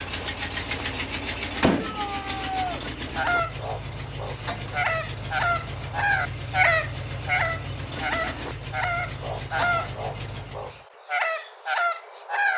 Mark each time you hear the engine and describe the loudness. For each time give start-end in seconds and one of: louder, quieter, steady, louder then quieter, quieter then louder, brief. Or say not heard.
0.0-10.8 quieter.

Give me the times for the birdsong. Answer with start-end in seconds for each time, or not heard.
3.0-12.5.